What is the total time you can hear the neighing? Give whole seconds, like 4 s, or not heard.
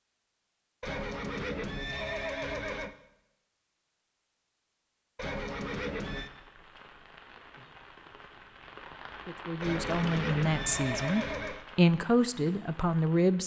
5 s.